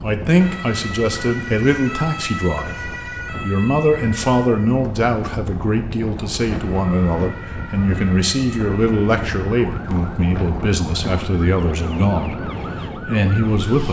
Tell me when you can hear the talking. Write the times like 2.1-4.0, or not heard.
0.0-13.8.